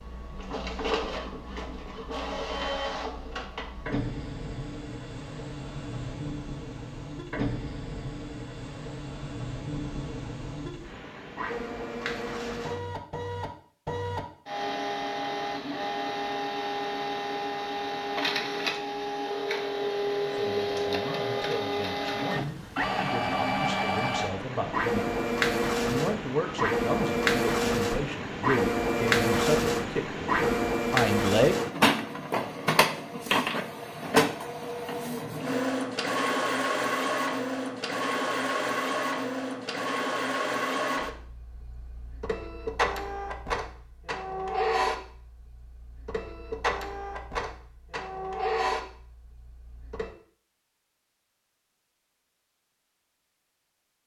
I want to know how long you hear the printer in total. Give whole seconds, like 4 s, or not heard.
50 s.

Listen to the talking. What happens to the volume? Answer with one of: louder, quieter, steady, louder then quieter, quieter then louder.
louder.